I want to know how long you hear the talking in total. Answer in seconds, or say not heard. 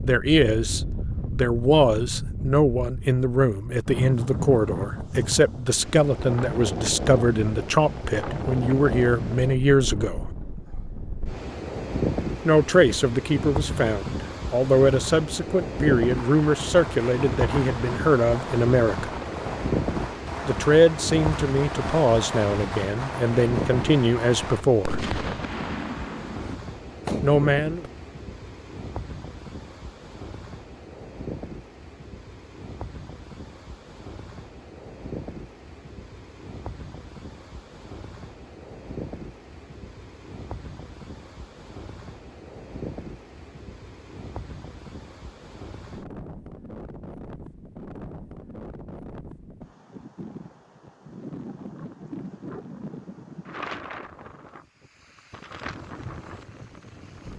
22 s.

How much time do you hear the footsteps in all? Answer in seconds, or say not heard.
not heard.